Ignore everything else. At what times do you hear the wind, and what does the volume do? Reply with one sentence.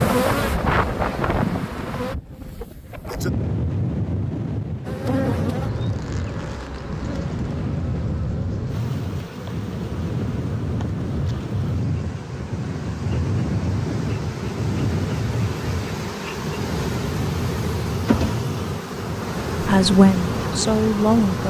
The wind can be heard from 0.0 to 21.4 s, at a steady volume.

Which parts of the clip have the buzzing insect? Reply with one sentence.
The buzzing insect can be heard from 0.0 to 2.1 s and from 4.8 to 21.4 s.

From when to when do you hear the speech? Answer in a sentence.
You can hear the speech from 19.6 to 21.4 s.